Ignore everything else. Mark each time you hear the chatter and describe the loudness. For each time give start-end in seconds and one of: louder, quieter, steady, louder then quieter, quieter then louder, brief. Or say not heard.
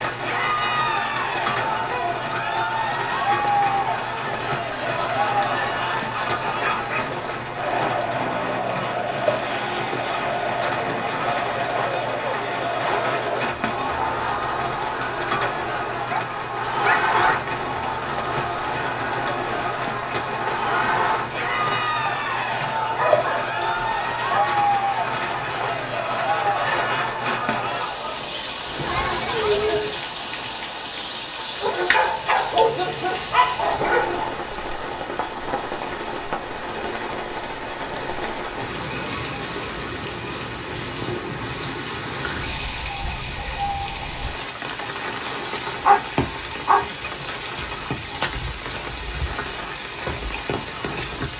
0.1-30.0 steady.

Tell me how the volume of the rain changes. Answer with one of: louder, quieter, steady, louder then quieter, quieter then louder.
steady.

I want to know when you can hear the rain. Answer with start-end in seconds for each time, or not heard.
0.0-51.3.